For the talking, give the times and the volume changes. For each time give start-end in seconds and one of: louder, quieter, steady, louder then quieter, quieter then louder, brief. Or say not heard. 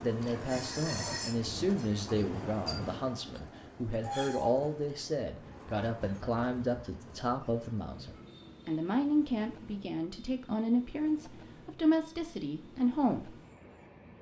0.0-13.3 steady.